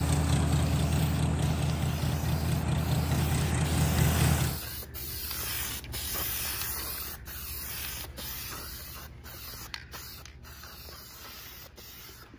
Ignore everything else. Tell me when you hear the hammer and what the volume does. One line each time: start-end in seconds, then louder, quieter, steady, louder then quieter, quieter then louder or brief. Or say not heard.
not heard.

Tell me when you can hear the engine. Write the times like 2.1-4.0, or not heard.
0.0-4.6.